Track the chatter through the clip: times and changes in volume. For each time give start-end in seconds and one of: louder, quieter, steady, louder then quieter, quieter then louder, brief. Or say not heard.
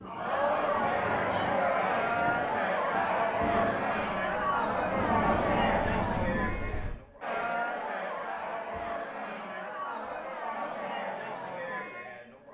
0.0-12.5 quieter.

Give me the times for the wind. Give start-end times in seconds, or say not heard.
0.0-6.9.